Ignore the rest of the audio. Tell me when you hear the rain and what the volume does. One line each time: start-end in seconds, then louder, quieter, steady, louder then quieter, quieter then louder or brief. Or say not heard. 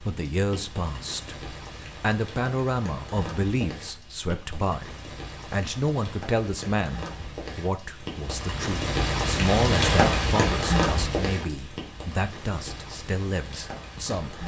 0.0-14.4 louder then quieter.